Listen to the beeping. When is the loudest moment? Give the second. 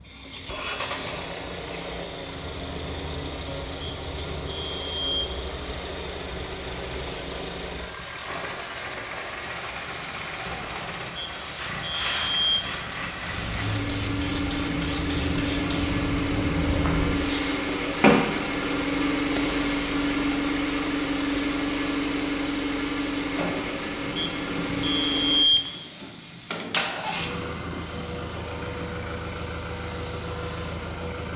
25 s.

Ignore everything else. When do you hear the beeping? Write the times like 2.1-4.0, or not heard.
3.8-5.3, 11.2-12.6, 24.1-25.6.